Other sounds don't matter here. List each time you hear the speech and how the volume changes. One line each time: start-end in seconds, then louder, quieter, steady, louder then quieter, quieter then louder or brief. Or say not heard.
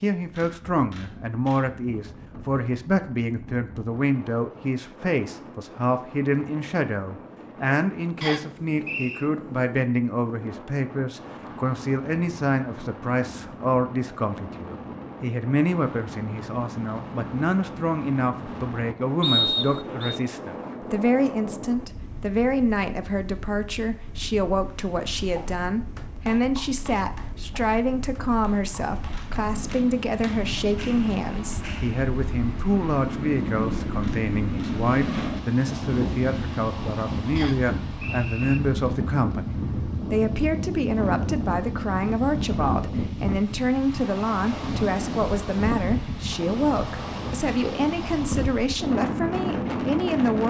0.0-50.4 steady.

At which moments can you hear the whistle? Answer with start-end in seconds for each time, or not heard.
8.2-9.2, 19.2-20.2, 37.4-38.6.